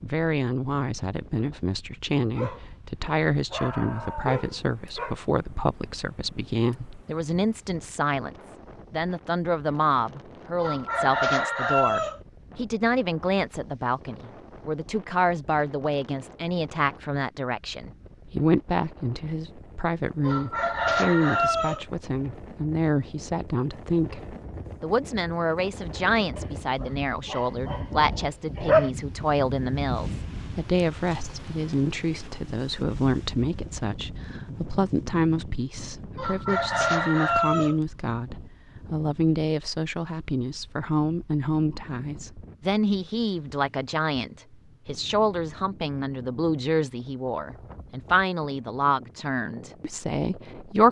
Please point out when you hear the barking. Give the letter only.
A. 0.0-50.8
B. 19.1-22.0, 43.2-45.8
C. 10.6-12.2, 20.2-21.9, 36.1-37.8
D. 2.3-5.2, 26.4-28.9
D.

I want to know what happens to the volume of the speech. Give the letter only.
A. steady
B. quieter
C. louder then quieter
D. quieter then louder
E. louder
A.